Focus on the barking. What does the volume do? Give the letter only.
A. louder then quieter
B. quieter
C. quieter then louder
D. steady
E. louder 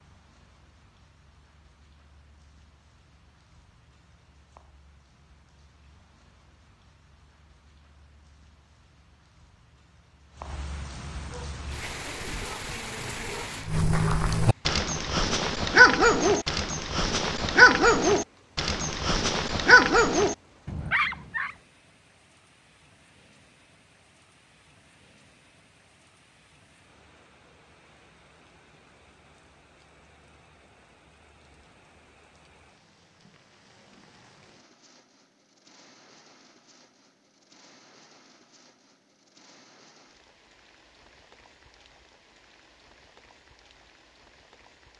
E.